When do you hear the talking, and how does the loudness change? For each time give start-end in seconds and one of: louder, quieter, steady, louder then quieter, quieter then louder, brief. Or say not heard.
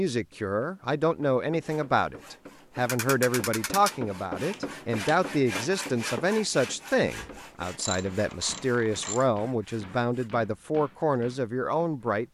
0.0-12.2 steady.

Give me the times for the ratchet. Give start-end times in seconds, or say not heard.
2.9-4.0, 7.0-9.2.